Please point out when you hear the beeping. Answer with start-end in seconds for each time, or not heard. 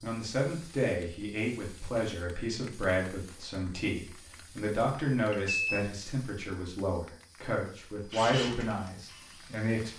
5.2-5.8.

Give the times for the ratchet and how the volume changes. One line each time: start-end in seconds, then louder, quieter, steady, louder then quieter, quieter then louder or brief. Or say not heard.
not heard.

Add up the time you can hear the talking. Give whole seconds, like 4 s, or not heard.
10 s.